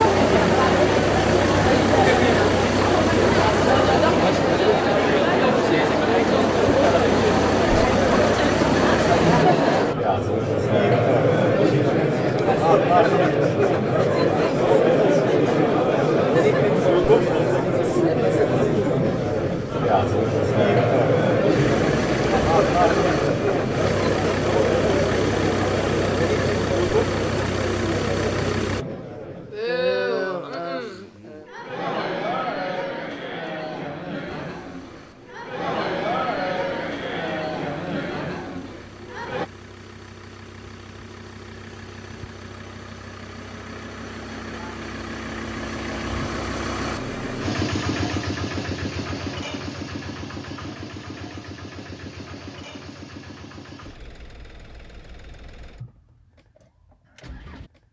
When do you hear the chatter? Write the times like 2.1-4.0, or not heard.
0.0-39.5.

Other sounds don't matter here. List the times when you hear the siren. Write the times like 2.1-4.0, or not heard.
not heard.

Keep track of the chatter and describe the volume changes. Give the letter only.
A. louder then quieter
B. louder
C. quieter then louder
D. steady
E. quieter
E.